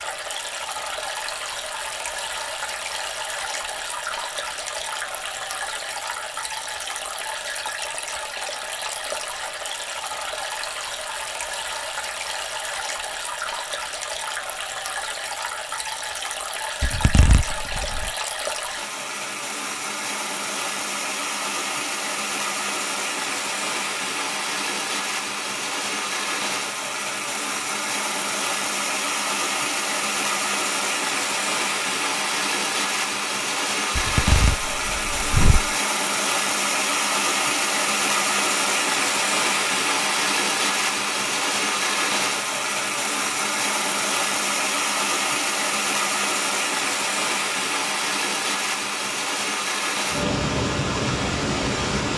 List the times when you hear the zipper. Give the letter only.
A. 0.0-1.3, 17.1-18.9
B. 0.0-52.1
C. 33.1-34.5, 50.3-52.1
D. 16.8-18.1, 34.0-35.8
D.